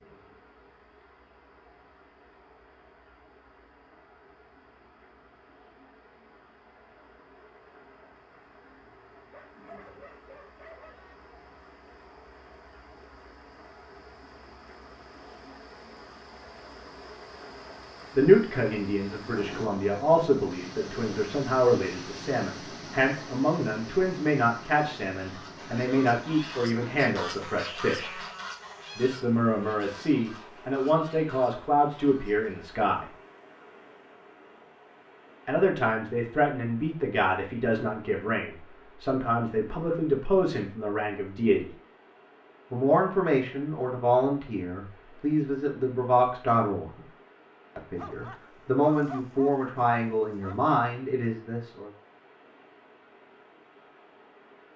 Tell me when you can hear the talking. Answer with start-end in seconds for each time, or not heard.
18.1-28.2, 28.9-33.1, 35.5-41.7, 42.7-47.0, 47.8-51.9.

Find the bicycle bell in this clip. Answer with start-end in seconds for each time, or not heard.
not heard.